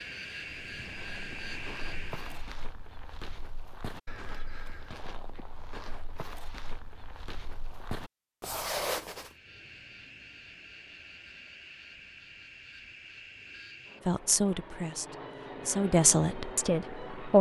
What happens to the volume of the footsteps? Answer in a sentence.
The loudness of the footsteps goes up.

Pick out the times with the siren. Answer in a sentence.
The siren can't be heard in this clip.